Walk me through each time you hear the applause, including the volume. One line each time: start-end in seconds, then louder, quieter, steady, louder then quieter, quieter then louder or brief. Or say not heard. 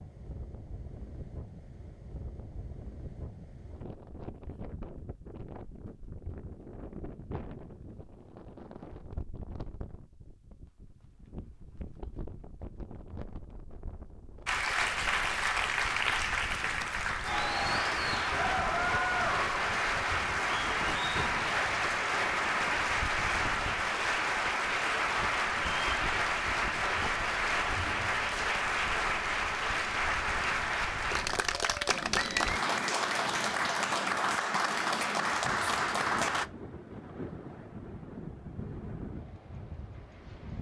14.4-36.5 steady.